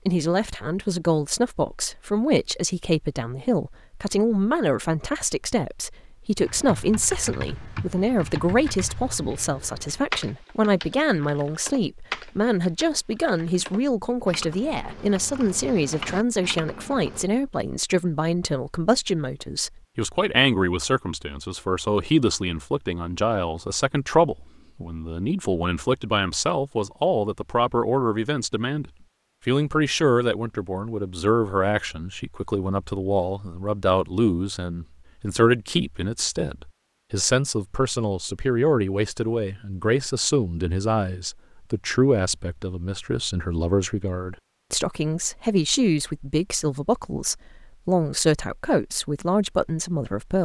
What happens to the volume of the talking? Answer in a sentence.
The volume of the talking stays about the same.